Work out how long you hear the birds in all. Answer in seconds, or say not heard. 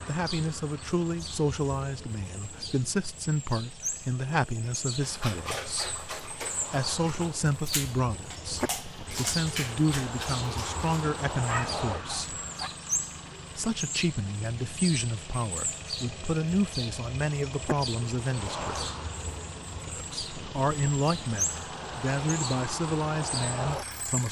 24 s.